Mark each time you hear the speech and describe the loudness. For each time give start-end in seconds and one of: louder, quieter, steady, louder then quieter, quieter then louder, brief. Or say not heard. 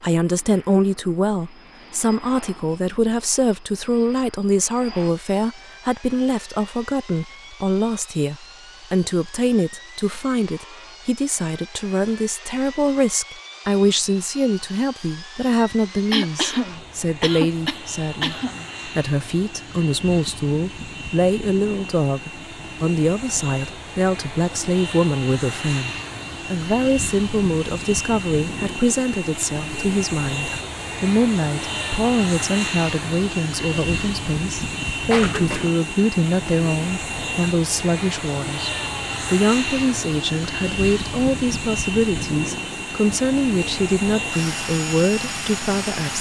0.0-46.1 steady.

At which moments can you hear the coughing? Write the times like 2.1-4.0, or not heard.
16.1-18.6, 35.1-35.7.